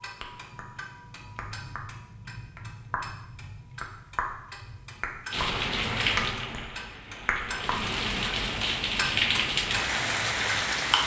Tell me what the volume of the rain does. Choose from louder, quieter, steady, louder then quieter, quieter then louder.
quieter then louder.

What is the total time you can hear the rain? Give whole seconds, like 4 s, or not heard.
6 s.